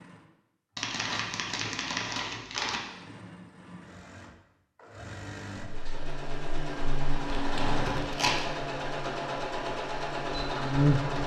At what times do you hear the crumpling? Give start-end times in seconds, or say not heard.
0.8-2.8, 7.3-8.4.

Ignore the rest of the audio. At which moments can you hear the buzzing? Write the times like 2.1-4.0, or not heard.
5.6-11.2.